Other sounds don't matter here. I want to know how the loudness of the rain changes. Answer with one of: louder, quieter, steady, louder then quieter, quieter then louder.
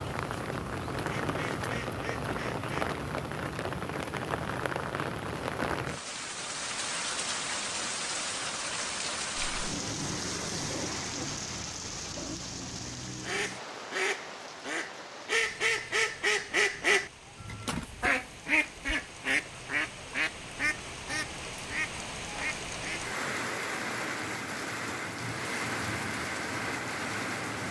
quieter then louder.